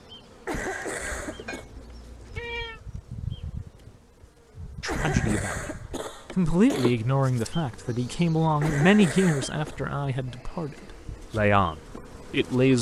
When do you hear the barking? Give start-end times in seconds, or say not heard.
not heard.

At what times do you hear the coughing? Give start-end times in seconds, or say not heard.
0.5-1.6, 4.8-7.0, 8.6-9.8.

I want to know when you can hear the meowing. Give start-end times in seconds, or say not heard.
1.1-2.8.